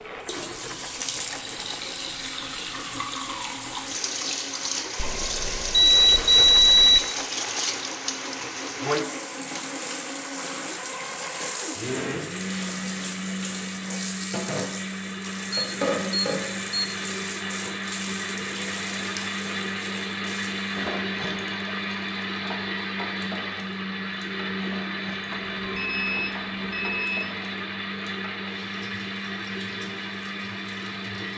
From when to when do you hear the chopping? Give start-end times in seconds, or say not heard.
not heard.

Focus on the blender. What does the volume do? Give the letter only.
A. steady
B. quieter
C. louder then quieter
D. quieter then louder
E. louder
E.